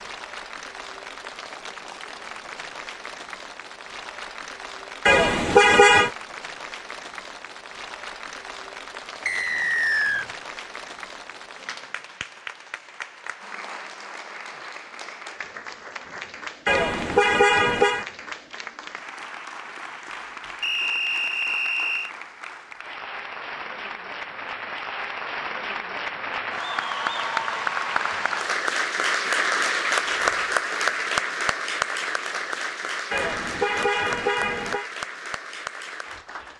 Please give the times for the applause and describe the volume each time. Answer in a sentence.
The applause can be heard from 0.0 to 36.5 s, getting louder.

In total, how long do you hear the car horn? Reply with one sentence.
You can hear the car horn for 4 seconds altogether.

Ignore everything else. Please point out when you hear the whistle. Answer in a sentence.
You can hear the whistle from 9.2 to 10.2 s and from 20.6 to 22.1 s.